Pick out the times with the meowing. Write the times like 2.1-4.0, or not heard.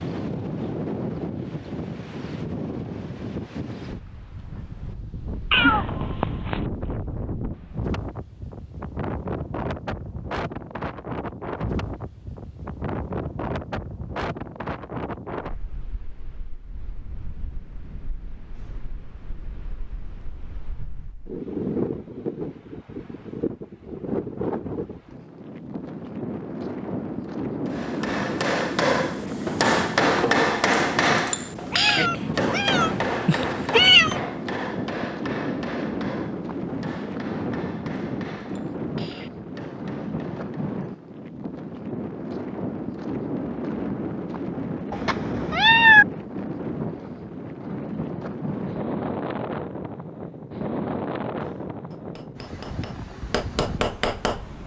5.5-6.6, 31.7-34.2, 44.9-46.0.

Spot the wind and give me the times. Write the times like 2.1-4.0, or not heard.
0.0-54.6.